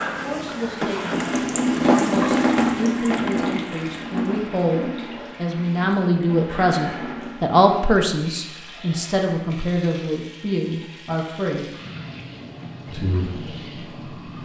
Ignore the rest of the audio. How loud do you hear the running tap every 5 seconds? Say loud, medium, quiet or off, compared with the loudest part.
loud, quiet, quiet.